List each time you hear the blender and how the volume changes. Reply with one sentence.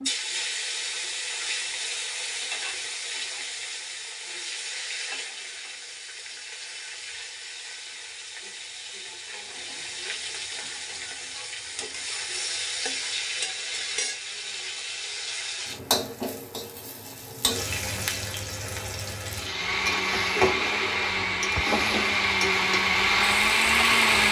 You can hear the blender from 19.4 to 24.2 s, getting louder.